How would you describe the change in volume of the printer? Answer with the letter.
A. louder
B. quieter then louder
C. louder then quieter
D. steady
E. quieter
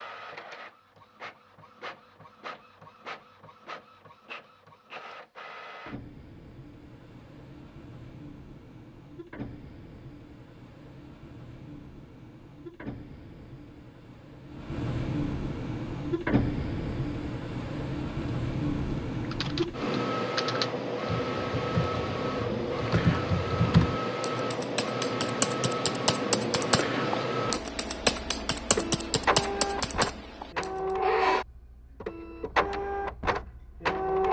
A.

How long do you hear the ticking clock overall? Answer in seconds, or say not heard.
not heard.